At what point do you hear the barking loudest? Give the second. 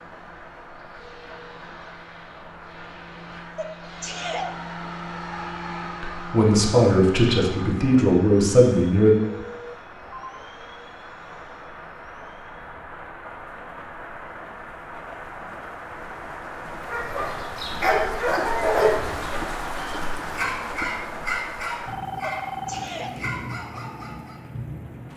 19 s.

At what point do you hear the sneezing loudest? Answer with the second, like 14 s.
4 s.